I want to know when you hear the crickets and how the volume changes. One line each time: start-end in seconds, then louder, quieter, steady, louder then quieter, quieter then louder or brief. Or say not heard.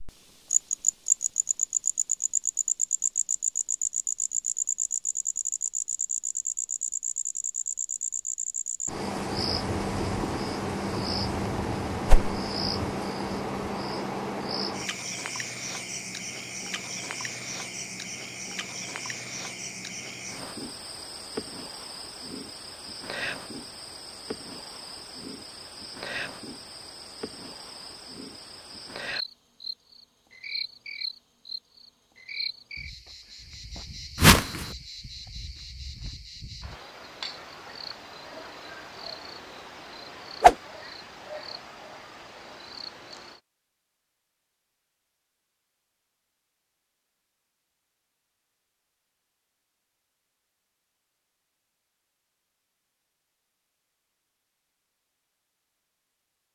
0.0-43.4 quieter.